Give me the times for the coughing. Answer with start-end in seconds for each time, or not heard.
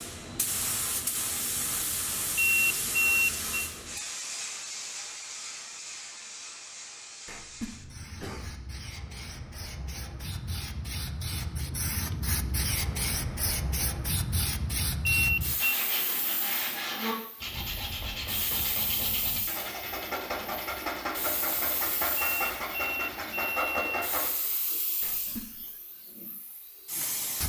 7.2-8.6, 25.0-25.7.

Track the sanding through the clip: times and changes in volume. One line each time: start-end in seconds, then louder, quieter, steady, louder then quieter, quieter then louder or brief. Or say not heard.
15.6-24.3 steady.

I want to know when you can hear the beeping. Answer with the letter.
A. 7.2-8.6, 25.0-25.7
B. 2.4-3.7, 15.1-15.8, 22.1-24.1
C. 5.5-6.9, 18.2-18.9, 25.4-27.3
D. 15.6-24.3
B.